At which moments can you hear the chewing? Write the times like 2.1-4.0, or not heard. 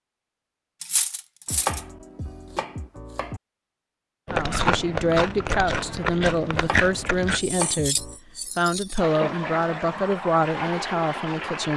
4.2-7.4.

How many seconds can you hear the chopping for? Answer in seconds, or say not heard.
4 s.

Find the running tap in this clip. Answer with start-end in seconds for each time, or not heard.
8.9-11.7.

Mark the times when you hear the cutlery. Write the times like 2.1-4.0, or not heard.
0.8-1.9, 7.3-9.0.